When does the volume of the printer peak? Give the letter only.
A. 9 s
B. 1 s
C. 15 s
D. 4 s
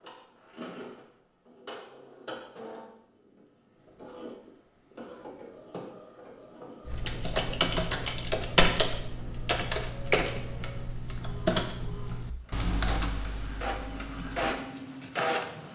C.